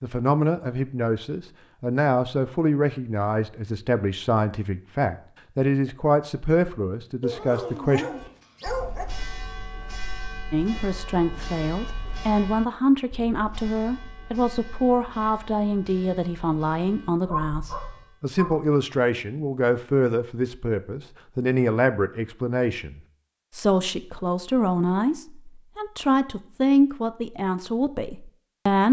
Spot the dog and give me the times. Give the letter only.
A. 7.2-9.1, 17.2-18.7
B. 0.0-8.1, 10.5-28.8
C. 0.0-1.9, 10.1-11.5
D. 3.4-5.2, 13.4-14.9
A.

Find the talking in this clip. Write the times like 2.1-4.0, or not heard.
0.0-8.1, 10.5-28.8.